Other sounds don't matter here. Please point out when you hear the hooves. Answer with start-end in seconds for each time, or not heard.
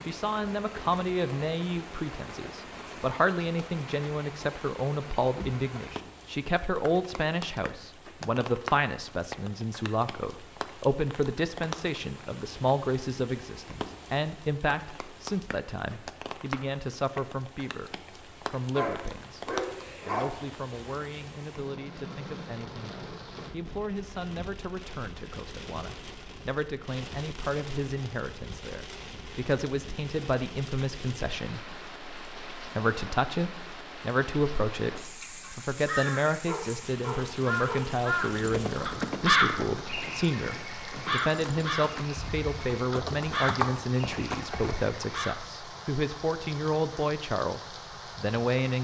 38.2-44.9.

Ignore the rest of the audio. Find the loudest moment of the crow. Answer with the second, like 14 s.
39 s.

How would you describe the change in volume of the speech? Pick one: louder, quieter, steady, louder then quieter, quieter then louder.
quieter then louder.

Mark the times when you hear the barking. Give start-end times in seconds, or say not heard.
18.8-20.2, 36.5-37.9.